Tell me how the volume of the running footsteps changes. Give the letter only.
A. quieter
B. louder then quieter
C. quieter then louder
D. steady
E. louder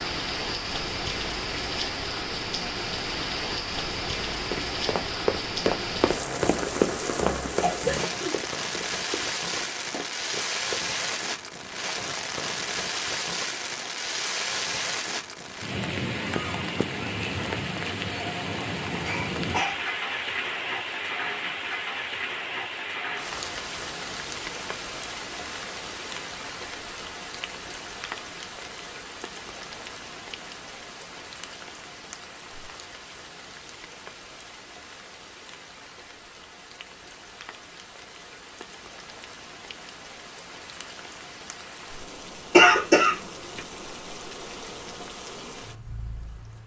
A.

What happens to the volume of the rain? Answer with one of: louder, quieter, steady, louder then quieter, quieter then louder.
quieter.